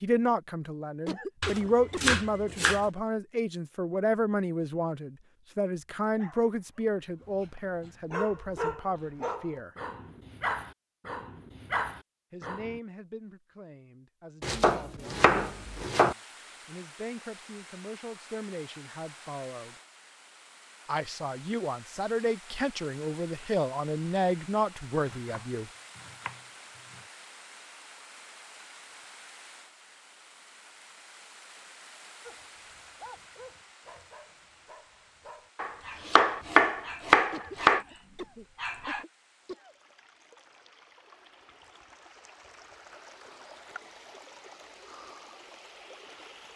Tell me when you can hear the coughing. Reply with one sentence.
The coughing can be heard from 1.1 to 2.2 s and from 37.3 to 39.8 s.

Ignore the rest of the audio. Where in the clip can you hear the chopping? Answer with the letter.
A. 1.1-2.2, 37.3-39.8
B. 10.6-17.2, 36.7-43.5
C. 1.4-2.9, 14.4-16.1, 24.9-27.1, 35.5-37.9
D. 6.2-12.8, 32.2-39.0
C.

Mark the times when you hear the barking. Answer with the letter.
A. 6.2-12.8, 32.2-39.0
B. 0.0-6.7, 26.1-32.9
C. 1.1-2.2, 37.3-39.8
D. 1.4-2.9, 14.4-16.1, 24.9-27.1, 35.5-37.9
A.